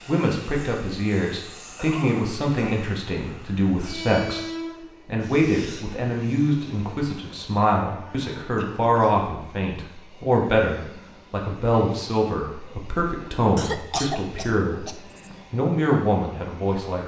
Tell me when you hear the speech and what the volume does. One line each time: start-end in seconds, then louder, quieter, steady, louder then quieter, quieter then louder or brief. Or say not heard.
0.1-17.0 steady.